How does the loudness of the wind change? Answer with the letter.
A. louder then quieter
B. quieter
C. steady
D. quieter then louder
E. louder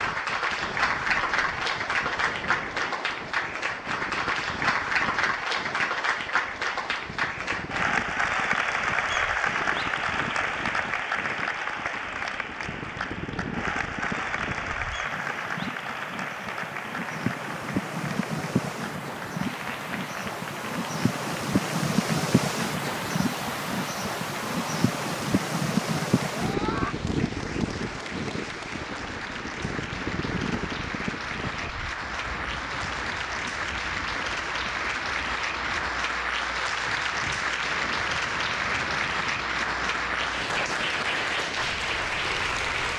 A.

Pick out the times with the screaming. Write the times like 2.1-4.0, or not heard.
26.4-26.9.